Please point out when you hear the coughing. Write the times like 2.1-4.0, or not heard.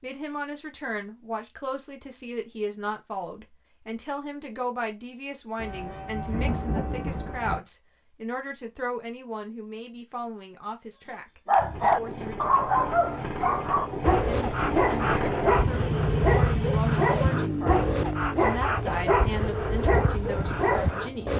not heard.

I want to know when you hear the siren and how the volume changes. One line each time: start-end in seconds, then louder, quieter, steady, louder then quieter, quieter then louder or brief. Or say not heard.
not heard.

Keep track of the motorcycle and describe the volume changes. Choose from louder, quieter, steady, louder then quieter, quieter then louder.
louder then quieter.